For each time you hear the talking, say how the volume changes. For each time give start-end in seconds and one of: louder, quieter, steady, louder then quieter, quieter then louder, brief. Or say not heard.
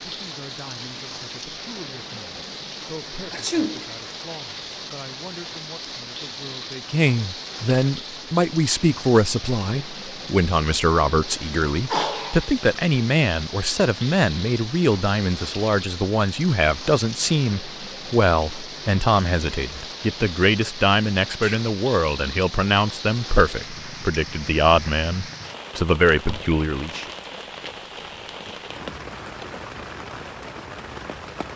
0.1-27.1 louder.